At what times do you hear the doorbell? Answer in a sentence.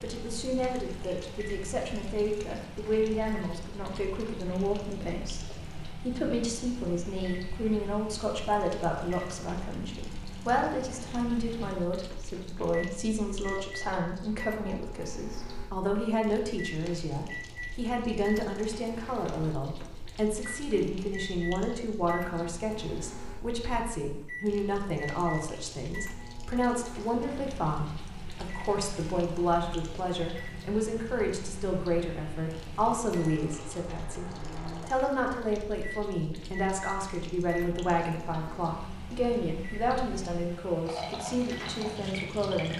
The doorbell can't be heard in this clip.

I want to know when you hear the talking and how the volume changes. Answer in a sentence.
The talking can be heard from 0.0 to 42.7 s, at a steady volume.